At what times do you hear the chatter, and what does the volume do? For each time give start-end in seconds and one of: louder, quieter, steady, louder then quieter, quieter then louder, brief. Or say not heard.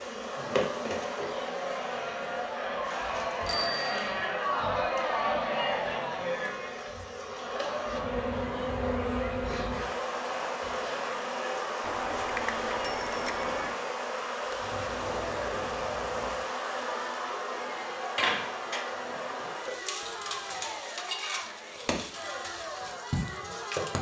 0.1-23.9 quieter.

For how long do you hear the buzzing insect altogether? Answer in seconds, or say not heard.
24 s.